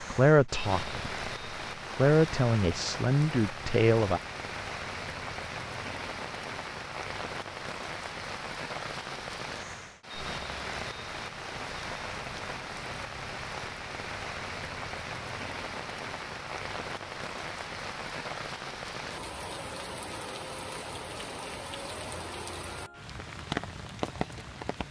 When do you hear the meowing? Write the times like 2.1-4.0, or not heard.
not heard.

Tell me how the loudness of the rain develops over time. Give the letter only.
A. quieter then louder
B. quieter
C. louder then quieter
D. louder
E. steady
E.